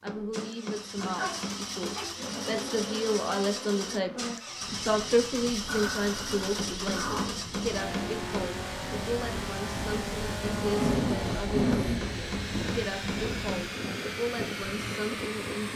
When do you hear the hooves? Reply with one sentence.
The hooves can't be heard in this clip.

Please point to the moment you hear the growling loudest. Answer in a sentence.
The loudest moment of the growling is at 11 seconds.